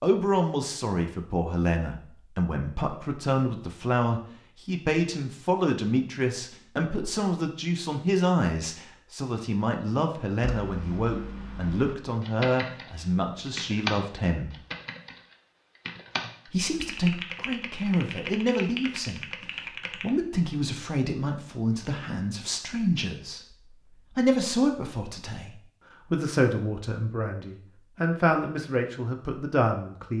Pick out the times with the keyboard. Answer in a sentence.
You can hear the keyboard from 10.4 to 20.1 s.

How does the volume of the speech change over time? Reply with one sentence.
The loudness of the speech stays about the same.